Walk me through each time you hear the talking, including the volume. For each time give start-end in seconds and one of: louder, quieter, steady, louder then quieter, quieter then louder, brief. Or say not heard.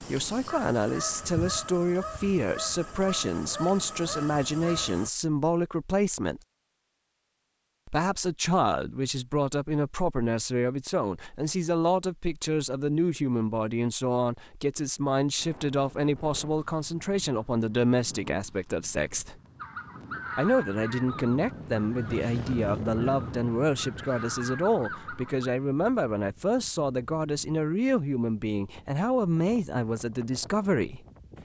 0.0-6.4 steady
7.8-19.4 steady
20.4-31.0 steady.